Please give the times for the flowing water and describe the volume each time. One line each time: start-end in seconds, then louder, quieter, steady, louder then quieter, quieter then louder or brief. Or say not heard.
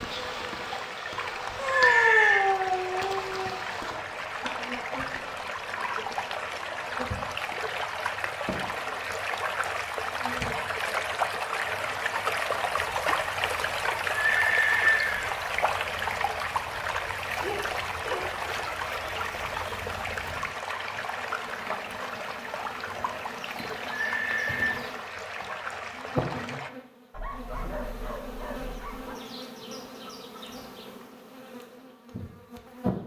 0.1-26.7 louder then quieter.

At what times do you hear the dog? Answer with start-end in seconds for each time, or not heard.
1.6-3.5, 17.4-18.6, 27.1-29.1.